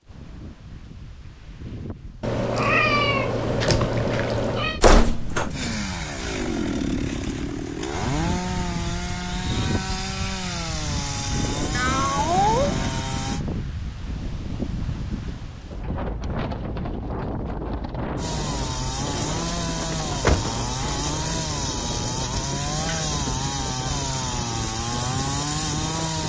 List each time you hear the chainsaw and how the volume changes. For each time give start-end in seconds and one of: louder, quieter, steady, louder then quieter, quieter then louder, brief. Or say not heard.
5.5-13.4 steady
18.1-26.2 steady.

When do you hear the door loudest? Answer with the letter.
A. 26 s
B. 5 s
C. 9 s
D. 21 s
B.